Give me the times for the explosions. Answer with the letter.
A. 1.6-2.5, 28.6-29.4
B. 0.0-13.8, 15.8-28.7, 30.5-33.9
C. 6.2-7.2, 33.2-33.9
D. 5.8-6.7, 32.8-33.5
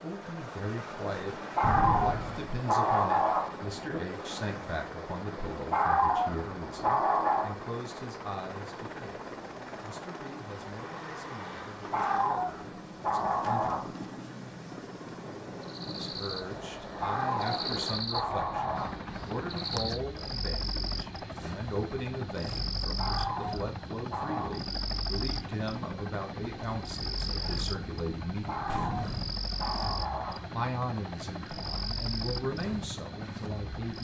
A.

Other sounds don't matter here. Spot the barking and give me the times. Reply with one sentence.
You can hear the barking from 1.6 to 4.0 s, from 5.7 to 7.5 s, from 11.9 to 14.1 s, from 17.0 to 19.0 s, from 22.9 to 24.6 s and from 28.4 to 30.5 s.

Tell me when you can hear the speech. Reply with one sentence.
You can hear the speech from 0.0 to 13.8 s, from 15.8 to 28.7 s and from 30.5 to 33.9 s.